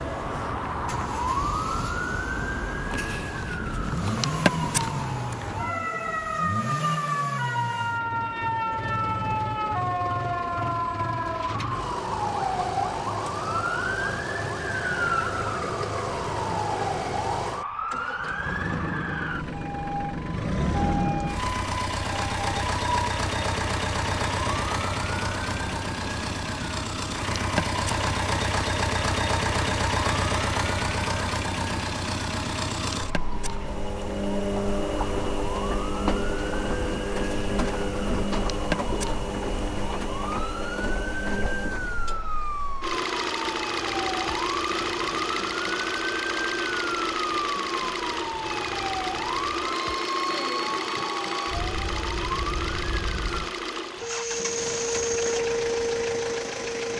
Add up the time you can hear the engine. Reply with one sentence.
The engine can be heard for 57 seconds in total.